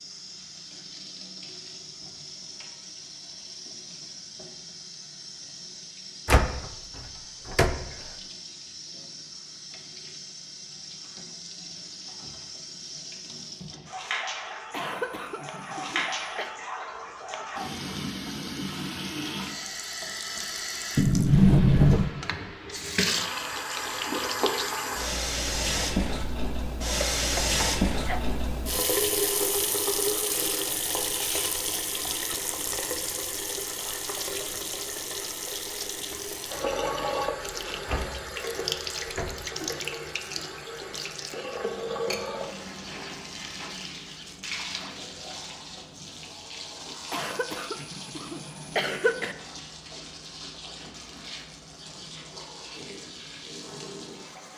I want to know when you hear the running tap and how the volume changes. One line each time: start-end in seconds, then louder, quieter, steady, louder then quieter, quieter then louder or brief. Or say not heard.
0.0-54.5 louder then quieter.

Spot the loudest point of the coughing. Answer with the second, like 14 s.
49 s.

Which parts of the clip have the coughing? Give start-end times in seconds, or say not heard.
14.7-16.6, 27.1-28.2, 47.0-49.4.